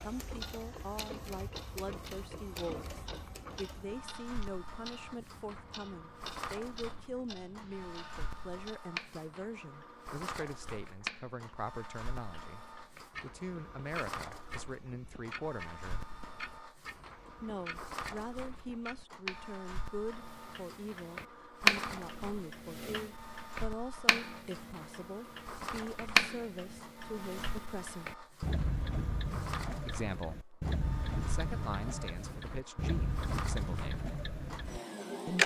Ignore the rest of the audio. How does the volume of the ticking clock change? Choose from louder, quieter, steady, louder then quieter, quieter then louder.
louder.